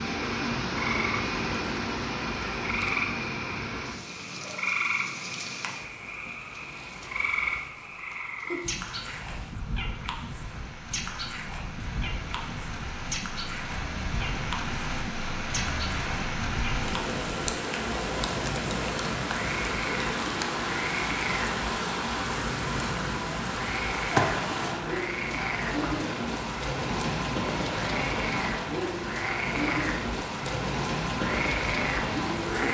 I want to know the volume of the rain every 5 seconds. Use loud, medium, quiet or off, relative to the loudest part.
loud, quiet, medium, loud, loud, loud, loud.